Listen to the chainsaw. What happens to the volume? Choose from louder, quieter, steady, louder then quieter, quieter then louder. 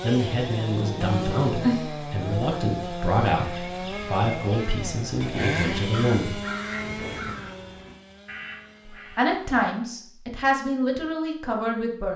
quieter.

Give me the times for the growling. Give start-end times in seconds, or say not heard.
0.8-1.9.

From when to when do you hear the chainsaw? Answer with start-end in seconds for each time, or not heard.
0.0-10.2.